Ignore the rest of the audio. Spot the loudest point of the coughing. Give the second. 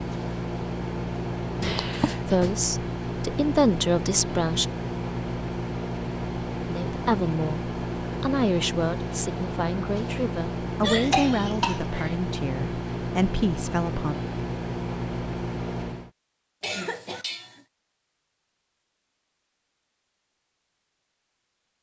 11 s.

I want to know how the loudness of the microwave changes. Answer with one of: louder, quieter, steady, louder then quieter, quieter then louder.
steady.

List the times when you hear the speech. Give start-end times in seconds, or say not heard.
2.2-4.7, 6.5-14.2.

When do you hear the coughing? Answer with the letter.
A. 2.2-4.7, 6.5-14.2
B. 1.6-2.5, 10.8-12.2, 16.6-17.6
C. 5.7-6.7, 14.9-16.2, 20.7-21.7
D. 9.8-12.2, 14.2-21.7
B.